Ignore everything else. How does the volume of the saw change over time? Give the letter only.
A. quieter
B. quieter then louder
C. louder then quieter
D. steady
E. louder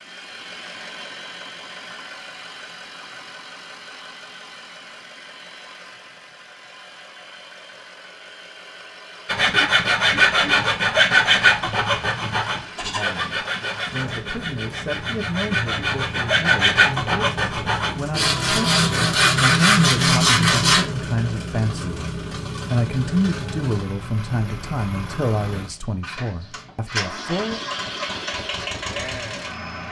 B.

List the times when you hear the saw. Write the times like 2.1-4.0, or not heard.
9.2-20.9.